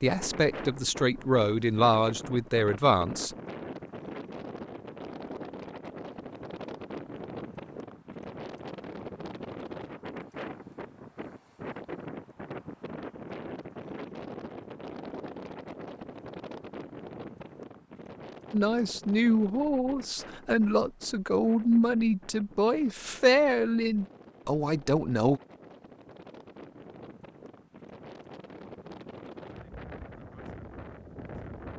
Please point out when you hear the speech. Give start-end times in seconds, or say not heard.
0.0-3.4, 18.5-25.4.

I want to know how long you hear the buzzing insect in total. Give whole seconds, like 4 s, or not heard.
not heard.